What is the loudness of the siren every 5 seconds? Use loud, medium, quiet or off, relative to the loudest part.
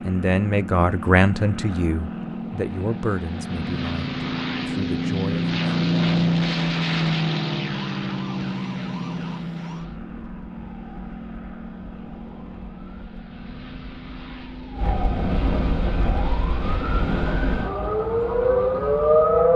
off, quiet, quiet, loud.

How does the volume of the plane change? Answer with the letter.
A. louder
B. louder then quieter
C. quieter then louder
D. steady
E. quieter
B.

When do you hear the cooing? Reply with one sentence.
The cooing can't be heard in this clip.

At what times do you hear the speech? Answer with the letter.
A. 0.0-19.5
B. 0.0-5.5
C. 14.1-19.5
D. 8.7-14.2
B.